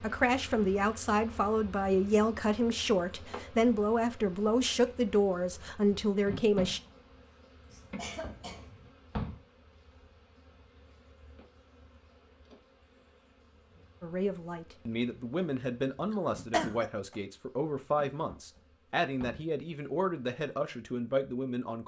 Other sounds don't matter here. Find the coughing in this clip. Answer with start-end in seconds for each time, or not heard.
7.7-8.9, 16.1-17.1.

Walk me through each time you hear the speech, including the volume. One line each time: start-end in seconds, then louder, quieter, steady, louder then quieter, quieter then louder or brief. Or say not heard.
0.0-6.8 steady
14.0-21.8 steady.